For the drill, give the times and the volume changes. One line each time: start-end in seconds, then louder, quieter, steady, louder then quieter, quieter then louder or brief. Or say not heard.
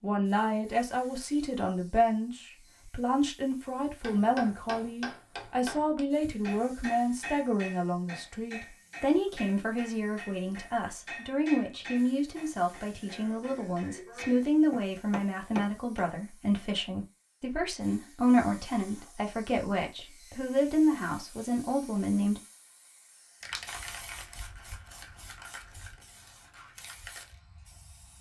not heard.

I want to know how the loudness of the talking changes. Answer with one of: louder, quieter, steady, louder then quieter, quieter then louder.
steady.